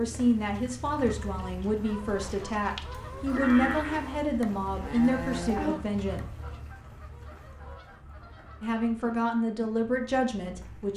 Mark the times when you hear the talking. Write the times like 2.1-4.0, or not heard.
0.0-6.2, 8.6-10.9.